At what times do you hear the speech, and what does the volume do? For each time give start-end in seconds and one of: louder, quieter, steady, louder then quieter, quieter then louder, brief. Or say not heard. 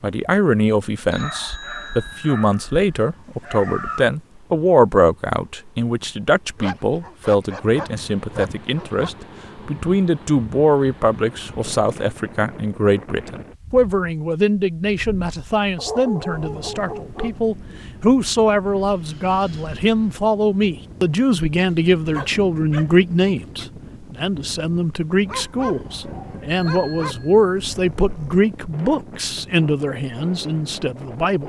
0.0-31.4 steady.